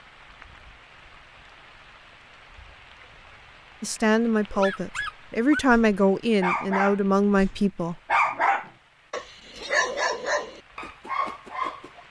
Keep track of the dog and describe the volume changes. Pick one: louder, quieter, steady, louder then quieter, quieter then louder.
louder then quieter.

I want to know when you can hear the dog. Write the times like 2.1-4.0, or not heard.
4.5-12.0.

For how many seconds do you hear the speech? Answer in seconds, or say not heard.
4 s.